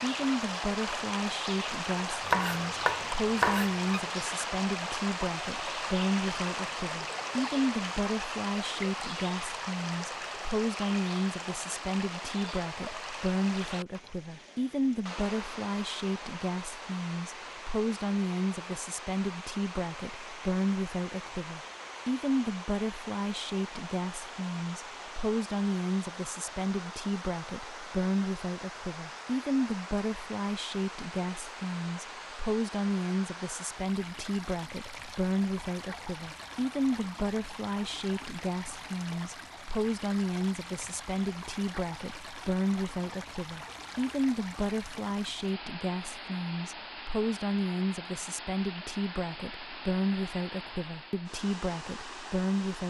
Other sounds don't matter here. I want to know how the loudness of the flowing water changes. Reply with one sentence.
The loudness of the flowing water goes down.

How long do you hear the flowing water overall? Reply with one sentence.
You can hear the flowing water for 53 seconds altogether.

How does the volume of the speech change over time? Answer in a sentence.
The volume of the speech stays about the same.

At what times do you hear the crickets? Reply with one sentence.
The crickets can't be heard in this clip.